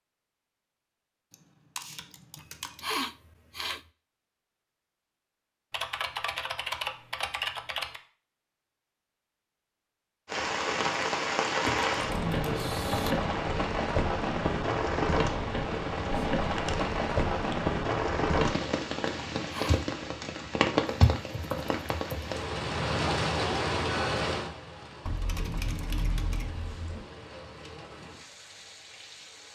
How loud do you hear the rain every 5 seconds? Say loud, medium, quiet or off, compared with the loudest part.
off, off, loud, loud, loud, quiet.